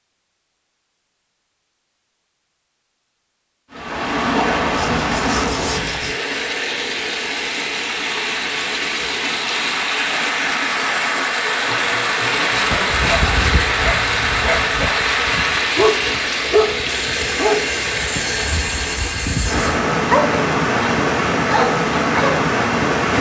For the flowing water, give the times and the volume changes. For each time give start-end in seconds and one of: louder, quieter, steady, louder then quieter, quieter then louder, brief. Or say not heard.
3.7-23.1 steady.